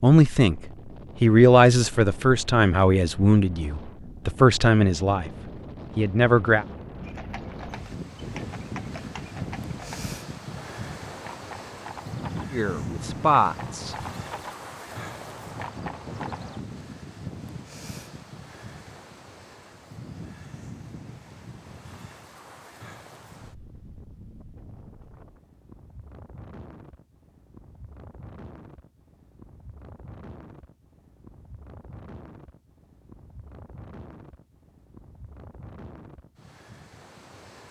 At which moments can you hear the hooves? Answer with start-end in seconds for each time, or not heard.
7.0-16.6.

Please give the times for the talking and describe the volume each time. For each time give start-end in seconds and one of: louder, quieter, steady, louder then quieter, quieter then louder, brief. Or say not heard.
0.0-0.6 brief
1.2-5.3 quieter then louder
6.0-6.7 brief
12.5-13.9 brief.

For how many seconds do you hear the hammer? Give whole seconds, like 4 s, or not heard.
not heard.